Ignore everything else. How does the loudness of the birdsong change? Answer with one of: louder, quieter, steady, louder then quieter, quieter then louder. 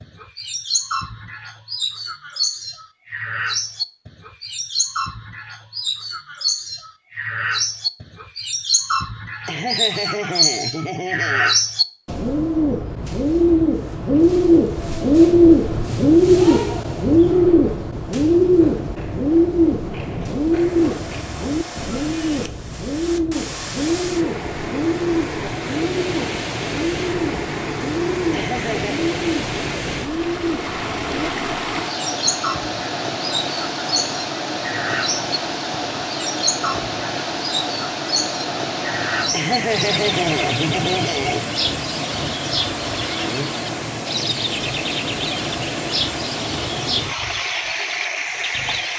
louder then quieter.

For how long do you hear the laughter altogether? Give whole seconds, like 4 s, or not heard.
5 s.